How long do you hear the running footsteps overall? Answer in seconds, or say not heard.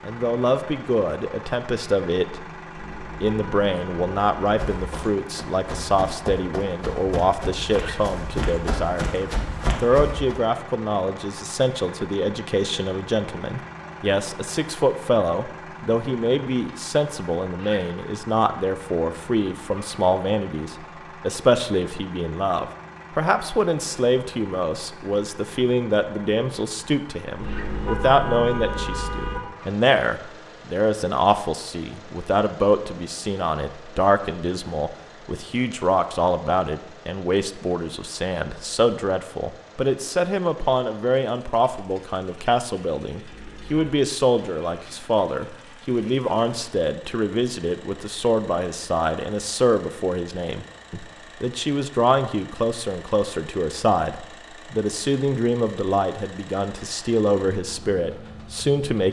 6 s.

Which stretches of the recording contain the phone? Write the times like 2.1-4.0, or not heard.
not heard.